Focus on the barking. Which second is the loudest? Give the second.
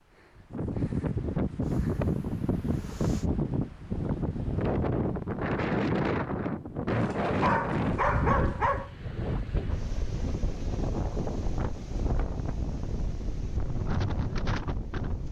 8 s.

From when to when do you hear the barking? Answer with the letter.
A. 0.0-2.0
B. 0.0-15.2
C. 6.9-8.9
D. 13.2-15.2
C.